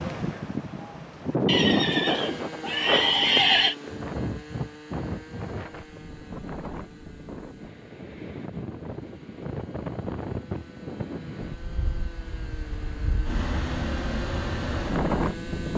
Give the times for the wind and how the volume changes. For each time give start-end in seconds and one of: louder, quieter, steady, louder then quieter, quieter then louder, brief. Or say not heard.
0.0-15.7 quieter then louder.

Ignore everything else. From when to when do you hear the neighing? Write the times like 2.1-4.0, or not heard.
1.4-3.8.